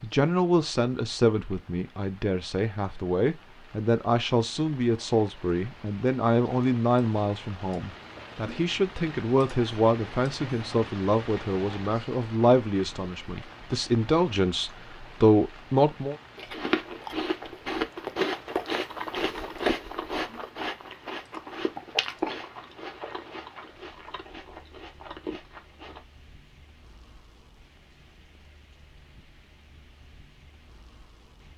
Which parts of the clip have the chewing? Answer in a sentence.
You can hear the chewing from 16.4 to 26.0 s.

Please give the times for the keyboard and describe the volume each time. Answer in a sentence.
The keyboard can't be heard in this clip.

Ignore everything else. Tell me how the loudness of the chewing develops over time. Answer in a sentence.
The loudness of the chewing goes down.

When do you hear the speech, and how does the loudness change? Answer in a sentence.
The speech can be heard from 0.0 to 16.1 s, at a steady volume.